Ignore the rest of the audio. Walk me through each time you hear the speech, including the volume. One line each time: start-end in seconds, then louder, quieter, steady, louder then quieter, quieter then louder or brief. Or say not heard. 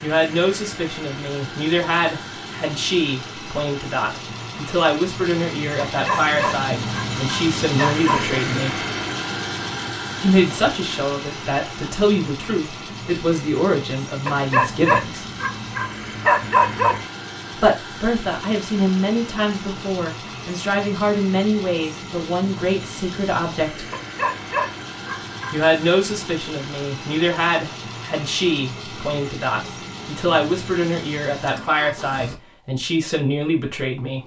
0.0-8.8 steady
10.2-15.2 steady
17.5-23.9 steady
25.5-34.2 steady.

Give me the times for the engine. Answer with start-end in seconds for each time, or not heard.
0.0-32.4.